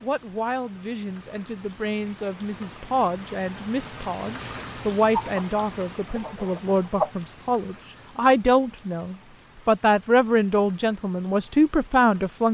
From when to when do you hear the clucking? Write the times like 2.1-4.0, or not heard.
5.1-7.1.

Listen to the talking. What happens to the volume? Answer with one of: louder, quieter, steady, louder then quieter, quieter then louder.
louder.